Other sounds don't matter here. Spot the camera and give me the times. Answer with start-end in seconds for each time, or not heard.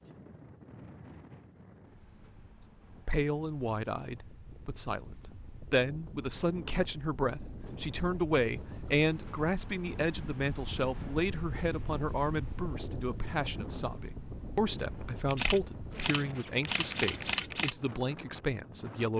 15.2-17.8.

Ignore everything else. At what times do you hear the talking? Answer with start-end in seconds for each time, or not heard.
3.0-19.1.